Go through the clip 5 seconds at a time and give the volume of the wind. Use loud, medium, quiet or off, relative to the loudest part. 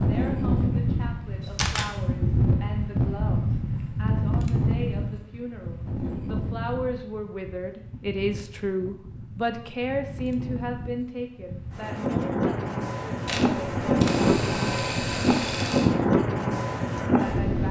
loud, quiet, loud, loud.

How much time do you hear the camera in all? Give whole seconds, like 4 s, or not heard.
3 s.